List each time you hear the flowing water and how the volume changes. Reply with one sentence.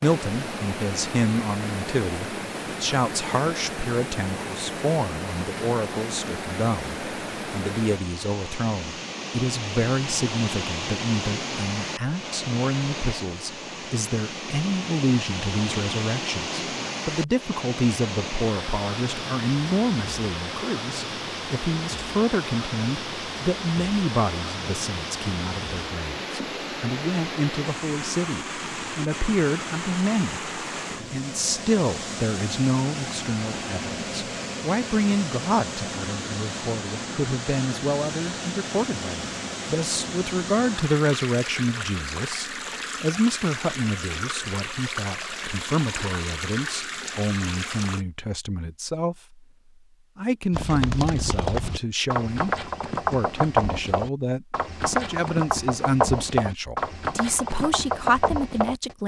The flowing water can be heard from 0.0 to 48.0 s, at a steady volume.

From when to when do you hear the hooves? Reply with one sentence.
You can hear the hooves from 50.5 to 59.0 s.